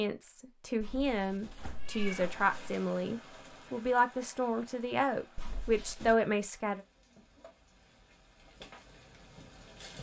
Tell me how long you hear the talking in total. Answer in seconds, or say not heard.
7 s.